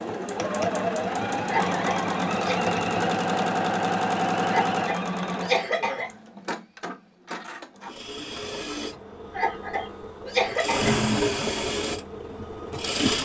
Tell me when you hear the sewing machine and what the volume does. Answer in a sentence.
The sewing machine can be heard from 0.0 to 13.1 s, getting quieter then louder.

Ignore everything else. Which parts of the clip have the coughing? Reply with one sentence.
You can hear the coughing from 1.4 to 2.5 s, from 4.5 to 6.1 s and from 9.3 to 10.9 s.